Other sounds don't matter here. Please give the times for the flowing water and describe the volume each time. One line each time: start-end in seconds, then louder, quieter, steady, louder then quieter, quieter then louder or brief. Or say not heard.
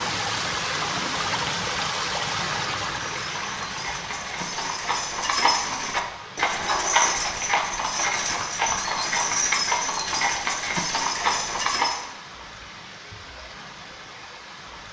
0.0-14.8 quieter.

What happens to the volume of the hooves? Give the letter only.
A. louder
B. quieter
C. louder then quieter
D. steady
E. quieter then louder
A.